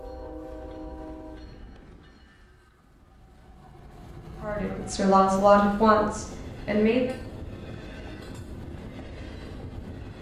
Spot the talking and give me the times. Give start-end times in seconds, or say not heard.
4.4-7.2.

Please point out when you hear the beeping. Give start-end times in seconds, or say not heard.
not heard.